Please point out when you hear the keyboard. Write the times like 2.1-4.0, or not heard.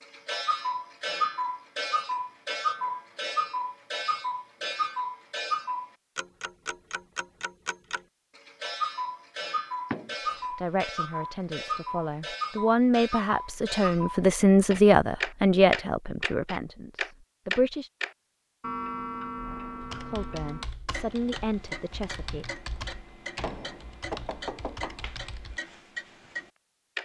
19.8-25.6.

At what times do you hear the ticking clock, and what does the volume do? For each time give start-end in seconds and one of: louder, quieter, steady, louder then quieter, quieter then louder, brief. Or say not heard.
0.0-26.9 quieter.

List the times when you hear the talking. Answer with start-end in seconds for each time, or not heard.
10.3-17.9, 20.1-22.4.